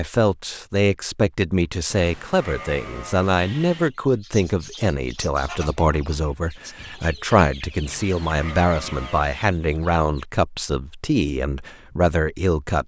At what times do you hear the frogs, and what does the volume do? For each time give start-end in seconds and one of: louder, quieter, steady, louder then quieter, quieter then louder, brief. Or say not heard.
not heard.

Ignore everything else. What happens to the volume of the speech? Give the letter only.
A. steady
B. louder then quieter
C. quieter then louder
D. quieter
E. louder
A.